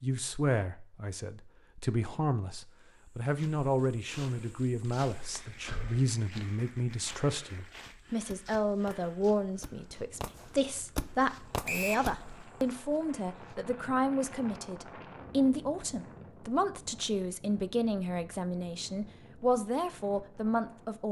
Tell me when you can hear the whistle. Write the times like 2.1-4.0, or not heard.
11.7-12.1.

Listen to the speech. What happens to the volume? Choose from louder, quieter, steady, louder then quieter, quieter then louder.
steady.